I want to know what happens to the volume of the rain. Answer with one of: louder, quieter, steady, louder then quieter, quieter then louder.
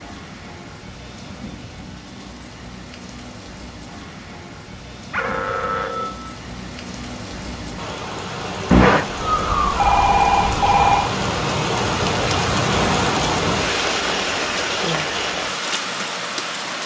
louder.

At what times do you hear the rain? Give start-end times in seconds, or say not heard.
0.0-16.8.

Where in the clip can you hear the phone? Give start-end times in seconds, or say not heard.
5.1-6.3, 8.7-11.1.